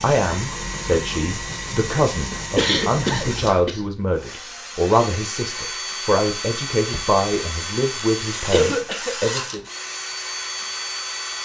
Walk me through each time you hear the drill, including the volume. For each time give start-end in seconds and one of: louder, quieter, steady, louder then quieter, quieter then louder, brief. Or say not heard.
0.0-11.3 steady.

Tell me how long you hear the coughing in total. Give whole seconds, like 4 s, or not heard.
2 s.